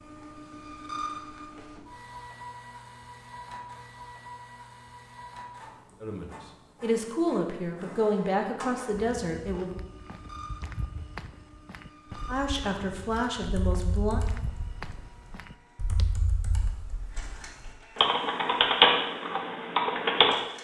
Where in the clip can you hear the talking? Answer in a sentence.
You can hear the talking from 6.0 to 9.8 s and from 12.2 to 14.2 s.